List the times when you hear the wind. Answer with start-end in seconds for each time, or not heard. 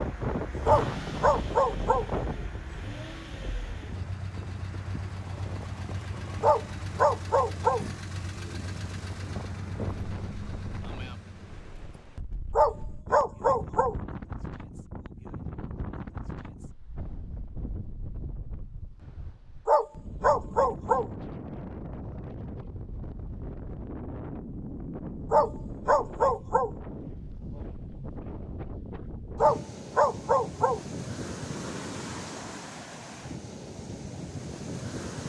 0.0-35.2.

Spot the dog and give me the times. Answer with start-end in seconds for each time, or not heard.
0.7-2.0, 6.4-7.8, 12.6-13.9, 19.6-21.1, 25.3-26.7, 29.4-30.8.